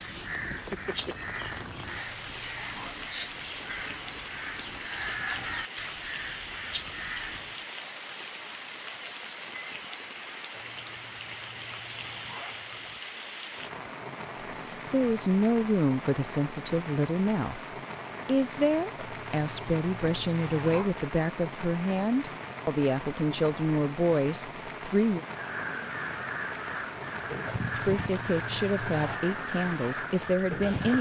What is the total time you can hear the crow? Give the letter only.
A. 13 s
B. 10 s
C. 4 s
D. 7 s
A.